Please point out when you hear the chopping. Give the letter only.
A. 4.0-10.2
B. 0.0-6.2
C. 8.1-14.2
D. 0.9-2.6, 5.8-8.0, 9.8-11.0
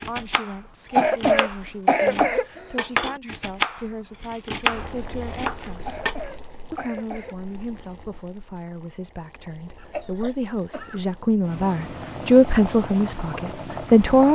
B.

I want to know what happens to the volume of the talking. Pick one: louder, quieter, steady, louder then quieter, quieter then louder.
louder.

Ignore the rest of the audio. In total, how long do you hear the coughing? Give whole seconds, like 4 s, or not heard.
5 s.